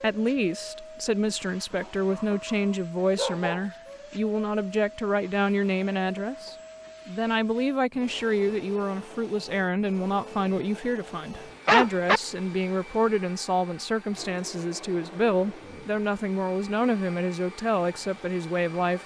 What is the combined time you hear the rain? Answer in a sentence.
You can't hear the rain here.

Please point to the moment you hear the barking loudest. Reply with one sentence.
The loudest moment of the barking is at 12 seconds.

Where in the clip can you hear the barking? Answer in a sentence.
You can hear the barking from 1.7 to 3.7 s and from 11.7 to 12.2 s.